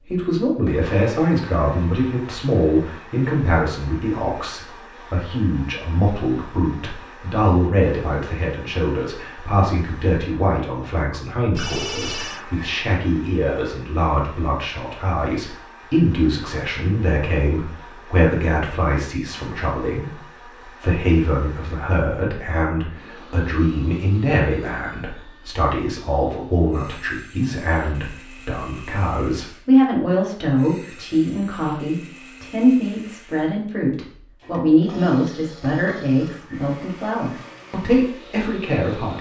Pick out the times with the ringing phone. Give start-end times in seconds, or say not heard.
11.6-12.4.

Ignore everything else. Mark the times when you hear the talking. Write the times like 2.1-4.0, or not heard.
0.1-39.1.